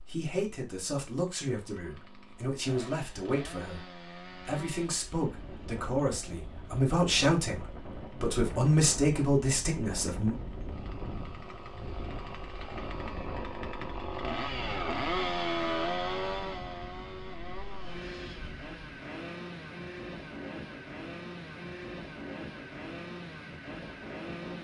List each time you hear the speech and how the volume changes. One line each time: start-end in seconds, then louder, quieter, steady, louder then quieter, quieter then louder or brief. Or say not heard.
0.1-10.3 louder.